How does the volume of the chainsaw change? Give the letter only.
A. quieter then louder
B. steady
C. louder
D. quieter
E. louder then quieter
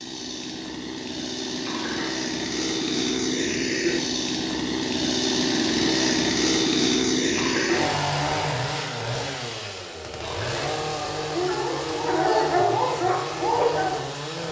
E.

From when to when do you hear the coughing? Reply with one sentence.
The coughing can be heard from 1.6 to 2.3 s, from 7.3 to 8.0 s and from 10.2 to 10.7 s.